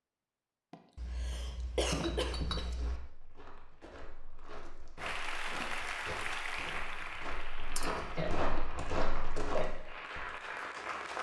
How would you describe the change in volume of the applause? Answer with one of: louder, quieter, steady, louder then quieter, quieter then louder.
quieter then louder.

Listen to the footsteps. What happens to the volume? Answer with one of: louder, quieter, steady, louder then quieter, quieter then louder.
louder.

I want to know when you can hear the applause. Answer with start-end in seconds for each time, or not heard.
5.0-11.1.